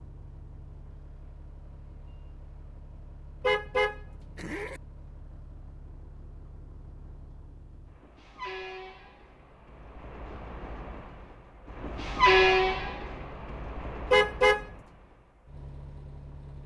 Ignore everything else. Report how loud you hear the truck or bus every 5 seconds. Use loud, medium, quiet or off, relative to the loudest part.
quiet, quiet, loud, quiet.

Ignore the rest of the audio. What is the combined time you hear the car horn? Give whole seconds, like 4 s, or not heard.
2 s.